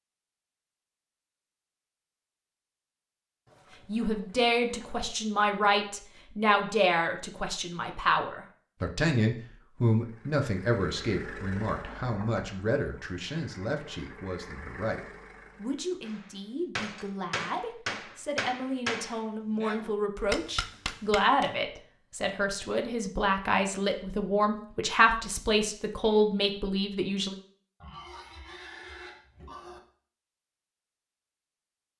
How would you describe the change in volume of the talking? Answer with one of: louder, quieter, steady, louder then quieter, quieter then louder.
quieter then louder.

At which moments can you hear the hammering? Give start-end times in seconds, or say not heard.
16.0-21.5.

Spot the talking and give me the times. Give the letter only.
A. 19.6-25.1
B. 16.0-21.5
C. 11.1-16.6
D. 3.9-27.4
D.